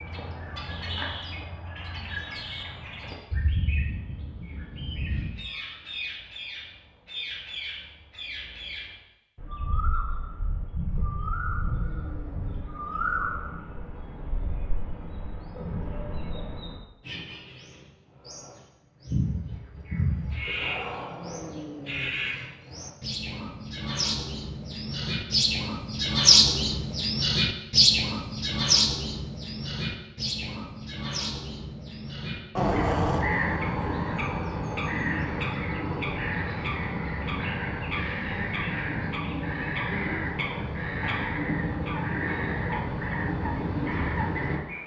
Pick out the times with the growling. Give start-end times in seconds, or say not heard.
10.9-12.7, 20.4-22.1, 32.5-33.3.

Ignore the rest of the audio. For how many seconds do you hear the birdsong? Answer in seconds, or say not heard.
45 s.